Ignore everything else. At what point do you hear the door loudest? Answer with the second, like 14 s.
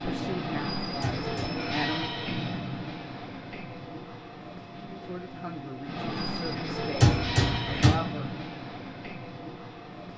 7 s.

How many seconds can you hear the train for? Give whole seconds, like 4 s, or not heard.
10 s.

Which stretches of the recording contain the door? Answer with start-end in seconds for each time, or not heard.
1.0-1.6, 7.0-8.0.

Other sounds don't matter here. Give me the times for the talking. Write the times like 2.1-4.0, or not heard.
0.0-2.1, 5.0-8.3.